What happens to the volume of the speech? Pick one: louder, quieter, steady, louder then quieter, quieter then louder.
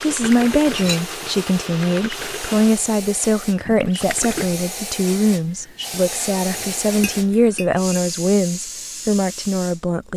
steady.